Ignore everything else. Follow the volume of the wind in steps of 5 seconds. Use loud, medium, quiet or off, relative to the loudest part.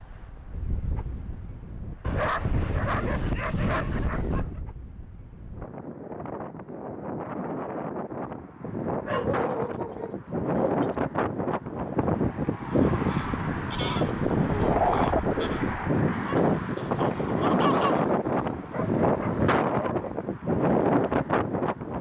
quiet, medium, loud, loud, loud.